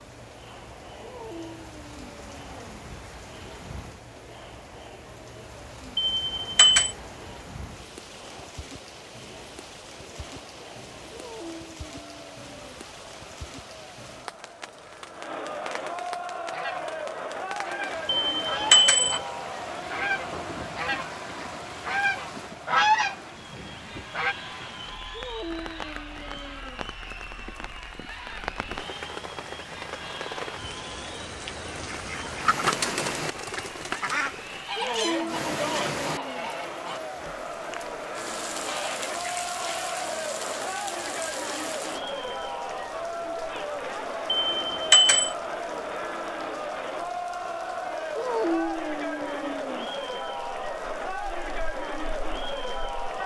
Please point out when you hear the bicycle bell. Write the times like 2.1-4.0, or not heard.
6.0-7.0, 18.1-19.2, 44.3-45.4.